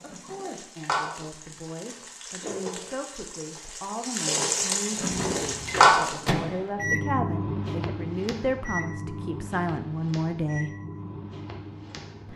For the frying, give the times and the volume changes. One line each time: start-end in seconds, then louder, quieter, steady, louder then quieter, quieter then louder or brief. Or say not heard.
0.0-6.2 quieter then louder.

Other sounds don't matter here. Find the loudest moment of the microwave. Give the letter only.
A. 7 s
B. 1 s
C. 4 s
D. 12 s
A.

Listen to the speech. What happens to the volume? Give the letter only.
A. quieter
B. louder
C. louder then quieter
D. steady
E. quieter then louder
B.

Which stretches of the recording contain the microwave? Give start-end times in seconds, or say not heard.
5.0-12.3.